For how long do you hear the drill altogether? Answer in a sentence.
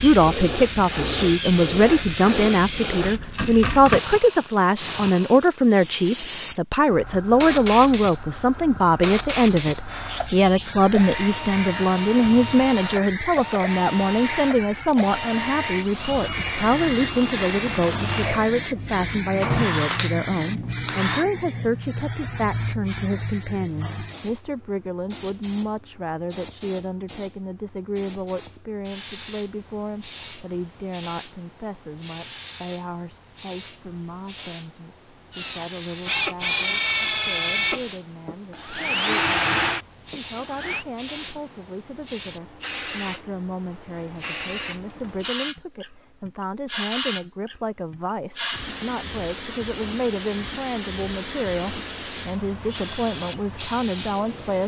You can hear the drill for 17 seconds altogether.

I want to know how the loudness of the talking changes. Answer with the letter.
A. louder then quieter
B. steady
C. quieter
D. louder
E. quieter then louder
E.